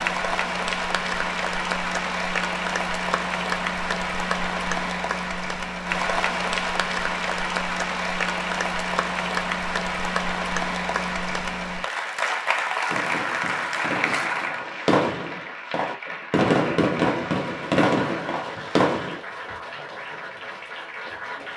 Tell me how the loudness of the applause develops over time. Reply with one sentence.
The volume of the applause goes down.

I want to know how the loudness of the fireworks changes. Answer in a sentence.
The loudness of the fireworks goes up.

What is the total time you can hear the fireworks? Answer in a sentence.
The fireworks can be heard for 6 seconds in total.